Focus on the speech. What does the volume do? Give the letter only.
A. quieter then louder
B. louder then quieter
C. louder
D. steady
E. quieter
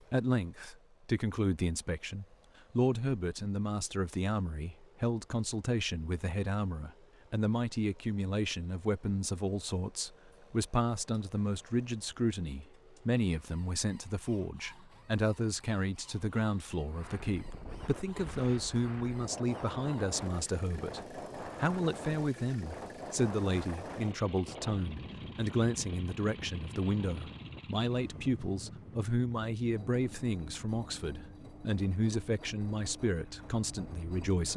D.